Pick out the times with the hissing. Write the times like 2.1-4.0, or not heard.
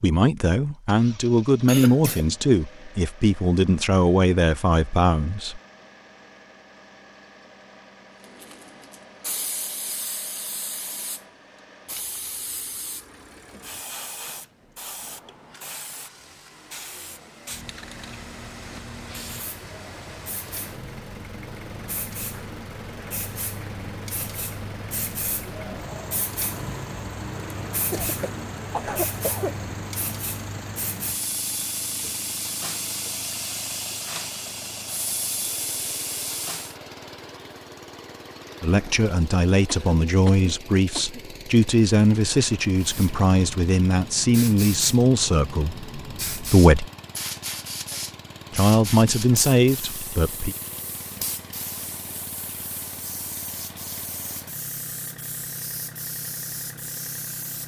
8.2-36.8, 42.8-57.6.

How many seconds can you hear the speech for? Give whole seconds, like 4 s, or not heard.
16 s.